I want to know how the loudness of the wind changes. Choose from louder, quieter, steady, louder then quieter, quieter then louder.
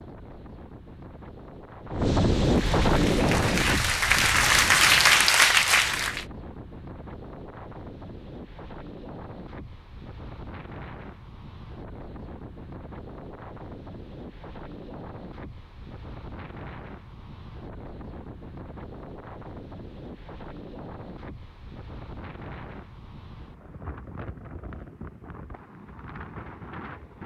quieter.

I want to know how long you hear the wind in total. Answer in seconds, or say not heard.
27 s.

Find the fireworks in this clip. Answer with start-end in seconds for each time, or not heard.
not heard.